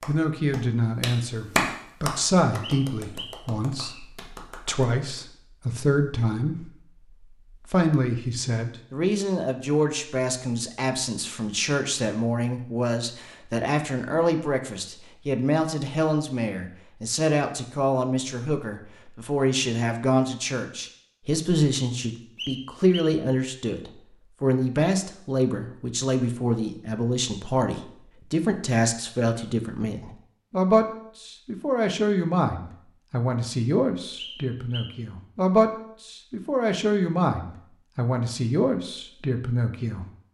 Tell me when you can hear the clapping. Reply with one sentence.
You can hear the clapping from 0.0 to 4.8 s.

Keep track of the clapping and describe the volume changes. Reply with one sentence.
The volume of the clapping goes up, then down.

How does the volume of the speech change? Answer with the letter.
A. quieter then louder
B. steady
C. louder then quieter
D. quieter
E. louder
B.